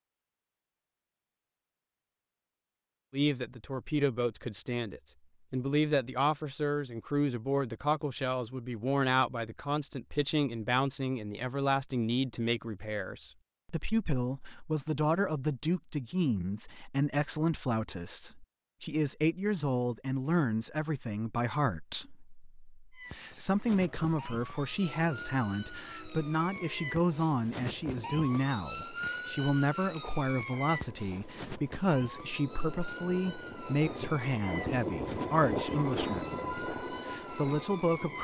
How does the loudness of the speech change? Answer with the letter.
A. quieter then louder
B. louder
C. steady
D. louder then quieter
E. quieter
C.